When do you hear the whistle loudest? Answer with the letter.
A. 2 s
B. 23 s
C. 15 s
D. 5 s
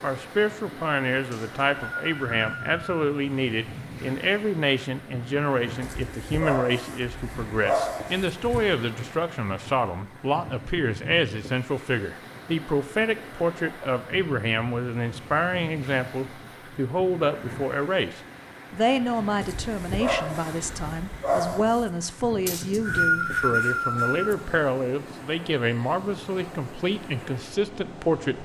B.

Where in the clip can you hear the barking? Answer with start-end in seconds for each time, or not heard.
5.8-8.8, 19.4-21.9.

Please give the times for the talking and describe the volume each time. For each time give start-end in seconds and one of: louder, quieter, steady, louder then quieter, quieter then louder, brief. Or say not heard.
0.0-28.4 steady.